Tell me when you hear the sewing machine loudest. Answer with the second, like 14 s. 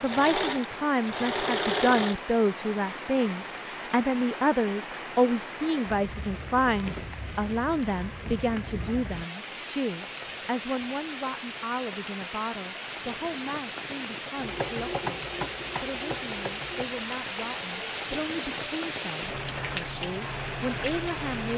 2 s.